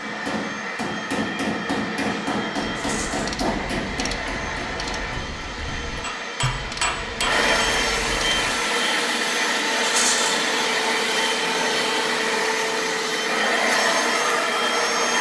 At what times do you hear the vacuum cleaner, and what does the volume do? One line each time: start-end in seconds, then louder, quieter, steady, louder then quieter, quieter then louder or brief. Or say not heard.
0.0-15.1 louder.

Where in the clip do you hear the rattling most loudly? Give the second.
10 s.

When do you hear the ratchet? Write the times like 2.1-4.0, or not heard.
2.6-8.6.